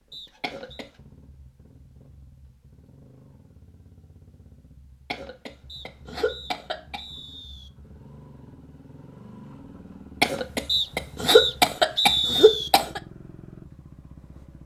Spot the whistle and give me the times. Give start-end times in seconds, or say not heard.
0.1-0.8, 5.7-7.7, 10.7-12.7.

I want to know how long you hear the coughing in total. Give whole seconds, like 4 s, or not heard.
5 s.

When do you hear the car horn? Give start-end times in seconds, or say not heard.
not heard.